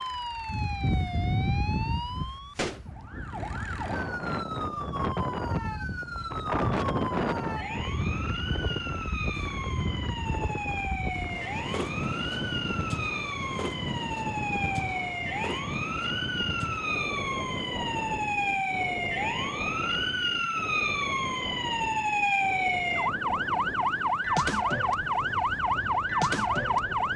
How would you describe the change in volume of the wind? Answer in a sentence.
The volume of the wind goes down.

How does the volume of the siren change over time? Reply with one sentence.
The loudness of the siren goes up.